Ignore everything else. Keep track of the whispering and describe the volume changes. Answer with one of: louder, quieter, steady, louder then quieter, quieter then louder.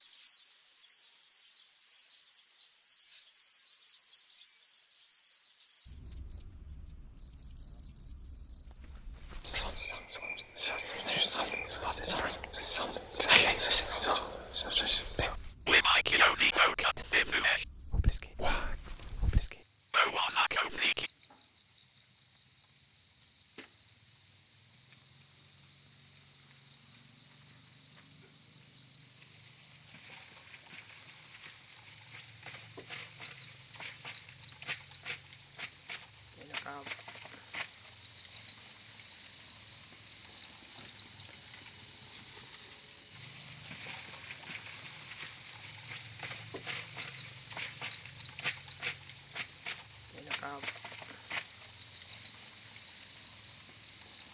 louder then quieter.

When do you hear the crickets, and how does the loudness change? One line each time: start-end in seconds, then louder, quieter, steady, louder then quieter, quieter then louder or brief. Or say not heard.
0.0-54.2 louder.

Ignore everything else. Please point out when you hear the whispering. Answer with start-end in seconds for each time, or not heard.
9.4-21.1.